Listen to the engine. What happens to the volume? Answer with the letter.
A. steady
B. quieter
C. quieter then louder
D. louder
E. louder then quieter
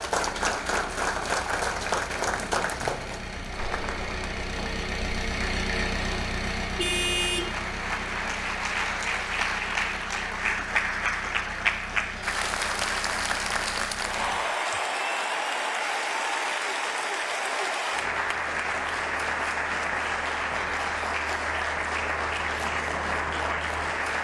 E.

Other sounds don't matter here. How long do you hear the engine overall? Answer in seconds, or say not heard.
14 s.